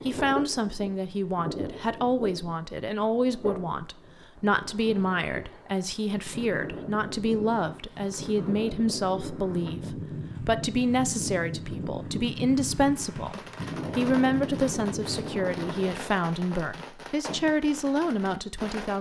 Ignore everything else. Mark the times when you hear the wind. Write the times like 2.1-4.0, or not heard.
0.0-16.2.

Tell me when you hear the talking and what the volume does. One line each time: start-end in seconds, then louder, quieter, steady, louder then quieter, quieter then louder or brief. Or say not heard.
0.1-18.9 steady.